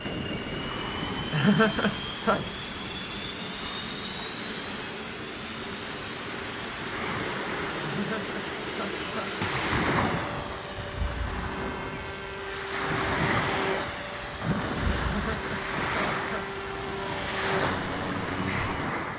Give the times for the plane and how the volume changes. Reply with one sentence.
The plane can be heard from 0.0 to 18.9 s, at a steady volume.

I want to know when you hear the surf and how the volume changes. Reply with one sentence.
The surf can be heard from 0.0 to 19.1 s, getting louder.